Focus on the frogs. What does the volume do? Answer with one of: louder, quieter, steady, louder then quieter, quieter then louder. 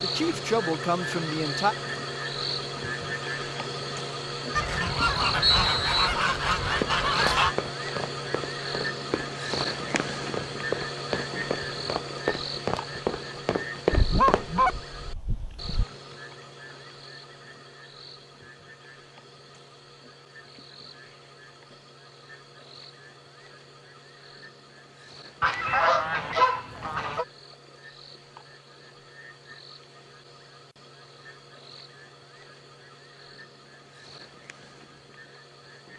quieter.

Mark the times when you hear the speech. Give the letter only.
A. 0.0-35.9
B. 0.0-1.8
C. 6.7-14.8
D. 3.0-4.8
B.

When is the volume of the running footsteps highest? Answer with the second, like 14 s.
14 s.